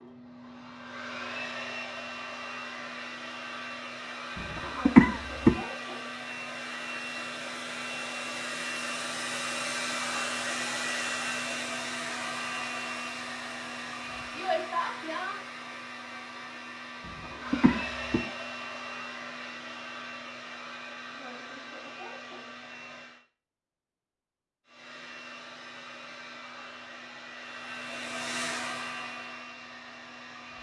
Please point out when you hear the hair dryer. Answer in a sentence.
You can hear the hair dryer from 0.0 to 23.2 s and from 24.6 to 30.5 s.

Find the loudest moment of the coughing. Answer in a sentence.
The loudest moment of the coughing is at 5 seconds.